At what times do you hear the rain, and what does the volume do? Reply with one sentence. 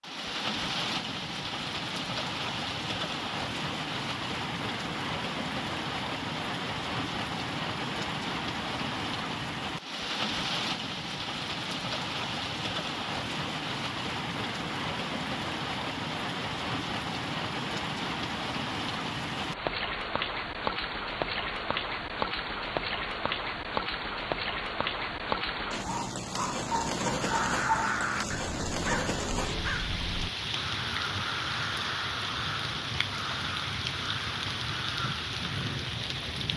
The rain can be heard from 0.0 to 36.5 s, at a steady volume.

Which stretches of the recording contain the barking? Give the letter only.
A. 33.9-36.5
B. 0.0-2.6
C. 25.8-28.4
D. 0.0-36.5
C.